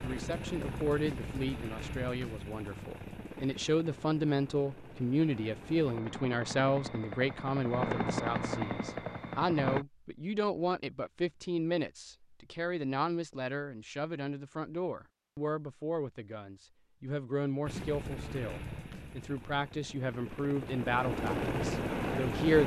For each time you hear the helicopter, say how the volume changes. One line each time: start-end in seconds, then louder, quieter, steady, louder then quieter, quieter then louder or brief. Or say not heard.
0.0-9.8 quieter then louder
17.6-22.6 quieter then louder.